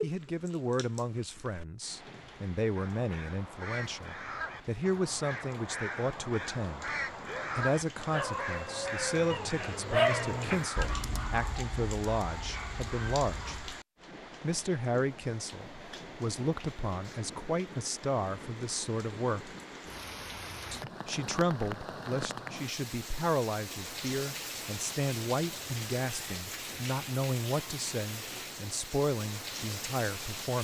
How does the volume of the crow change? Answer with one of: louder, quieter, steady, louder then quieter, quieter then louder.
steady.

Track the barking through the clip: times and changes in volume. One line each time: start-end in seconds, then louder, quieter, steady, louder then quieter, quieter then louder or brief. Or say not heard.
7.2-13.7 louder then quieter.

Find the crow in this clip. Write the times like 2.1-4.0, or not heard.
2.8-10.9.